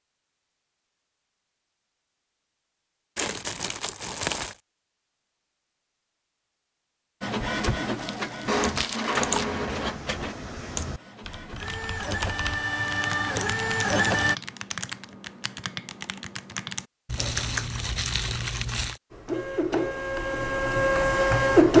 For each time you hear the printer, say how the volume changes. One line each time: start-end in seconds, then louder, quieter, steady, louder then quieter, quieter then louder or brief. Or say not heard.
7.2-14.3 quieter then louder
19.1-21.7 brief.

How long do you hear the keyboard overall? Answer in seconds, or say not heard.
9 s.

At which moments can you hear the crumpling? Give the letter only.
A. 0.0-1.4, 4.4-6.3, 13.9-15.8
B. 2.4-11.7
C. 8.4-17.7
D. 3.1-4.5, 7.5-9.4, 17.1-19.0
D.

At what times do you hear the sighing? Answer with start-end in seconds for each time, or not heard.
not heard.